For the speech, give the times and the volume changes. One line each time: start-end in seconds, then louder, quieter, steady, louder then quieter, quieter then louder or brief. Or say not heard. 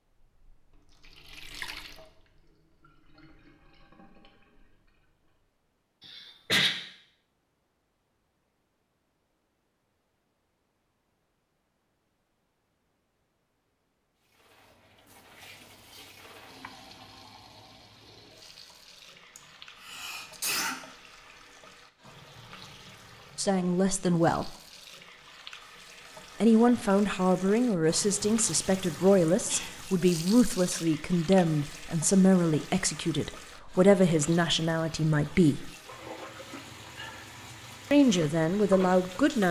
23.4-24.5 brief
26.4-35.7 steady
37.9-39.4 brief.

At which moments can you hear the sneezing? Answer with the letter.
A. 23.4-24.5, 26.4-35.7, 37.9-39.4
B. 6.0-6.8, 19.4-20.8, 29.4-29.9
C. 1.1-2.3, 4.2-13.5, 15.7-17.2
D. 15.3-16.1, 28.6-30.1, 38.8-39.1
B.